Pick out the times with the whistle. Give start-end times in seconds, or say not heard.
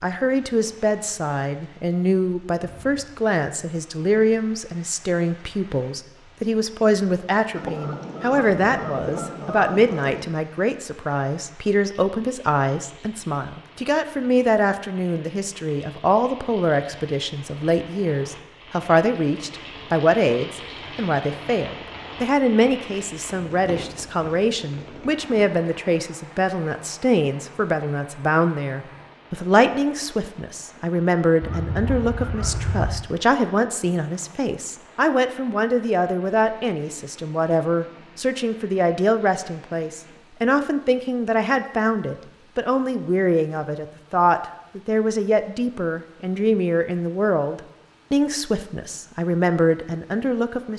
not heard.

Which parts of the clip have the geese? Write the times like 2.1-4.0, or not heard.
7.5-10.3, 31.4-33.0.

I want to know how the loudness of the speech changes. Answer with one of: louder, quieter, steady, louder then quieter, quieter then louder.
steady.